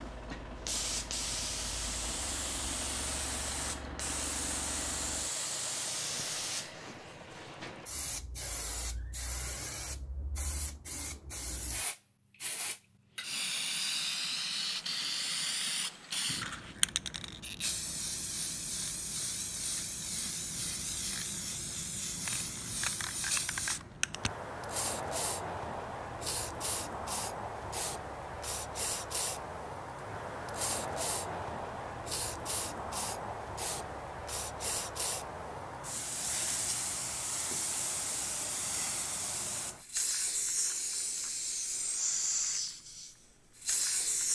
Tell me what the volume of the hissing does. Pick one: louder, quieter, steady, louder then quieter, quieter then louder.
steady.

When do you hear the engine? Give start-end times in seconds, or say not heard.
0.0-7.9.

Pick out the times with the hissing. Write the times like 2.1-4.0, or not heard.
0.0-44.2.